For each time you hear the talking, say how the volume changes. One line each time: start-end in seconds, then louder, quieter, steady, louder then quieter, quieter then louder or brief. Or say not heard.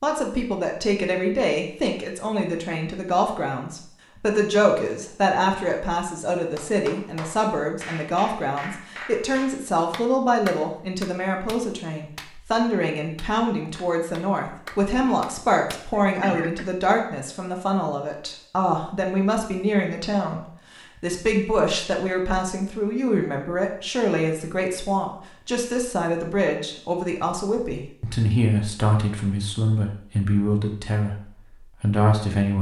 0.0-32.5 steady.